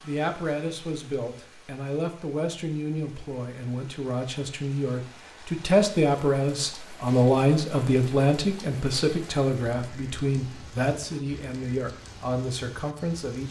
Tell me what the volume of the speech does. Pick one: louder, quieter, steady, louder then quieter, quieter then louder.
louder then quieter.